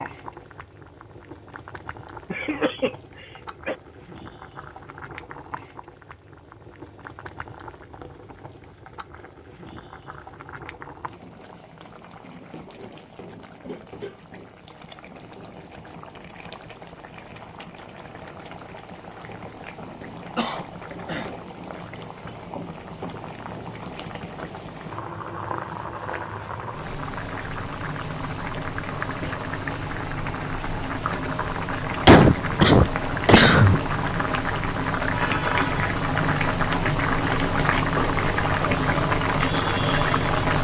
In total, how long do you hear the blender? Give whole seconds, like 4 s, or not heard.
not heard.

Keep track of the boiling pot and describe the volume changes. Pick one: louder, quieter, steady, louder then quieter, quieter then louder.
louder.